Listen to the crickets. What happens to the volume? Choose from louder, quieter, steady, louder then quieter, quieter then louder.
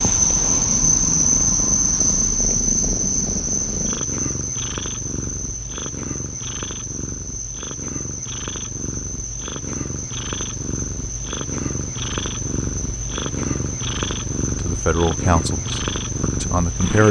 quieter.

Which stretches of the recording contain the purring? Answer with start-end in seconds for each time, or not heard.
0.0-17.0.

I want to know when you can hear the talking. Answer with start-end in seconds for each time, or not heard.
14.6-17.0.